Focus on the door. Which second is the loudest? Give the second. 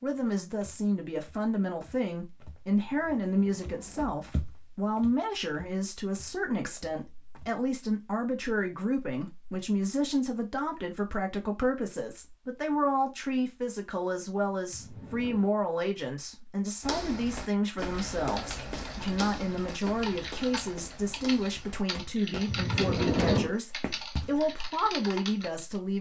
23 s.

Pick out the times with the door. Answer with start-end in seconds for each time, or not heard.
2.8-4.2, 14.7-15.5, 22.4-23.6.